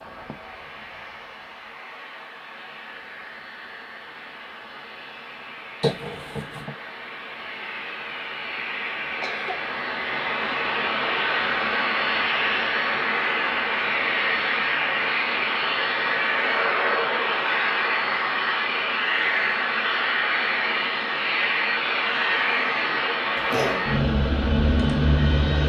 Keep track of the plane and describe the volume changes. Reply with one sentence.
The volume of the plane goes up.